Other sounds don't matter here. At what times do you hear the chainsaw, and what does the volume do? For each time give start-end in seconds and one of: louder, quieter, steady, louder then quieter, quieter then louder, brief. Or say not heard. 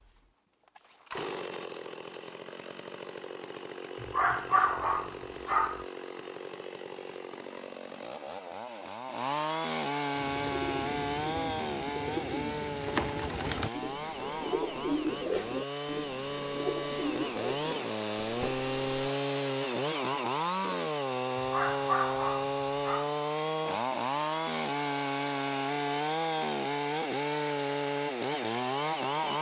0.0-29.3 louder.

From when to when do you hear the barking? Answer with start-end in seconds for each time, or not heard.
4.0-5.8, 21.4-23.1.